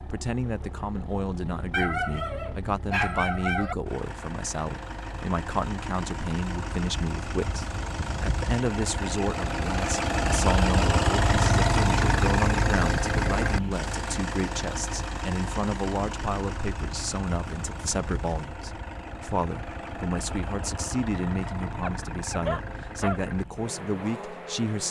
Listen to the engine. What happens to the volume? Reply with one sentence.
The volume of the engine goes up, then down.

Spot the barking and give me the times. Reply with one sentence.
You can hear the barking from 1.7 to 3.8 s and from 21.8 to 23.2 s.